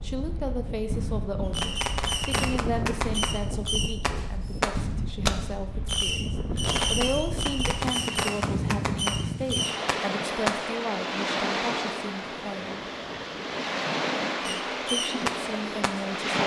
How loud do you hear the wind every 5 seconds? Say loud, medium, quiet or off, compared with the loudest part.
medium, loud, loud, loud.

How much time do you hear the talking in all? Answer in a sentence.
The talking can be heard for 15 seconds in total.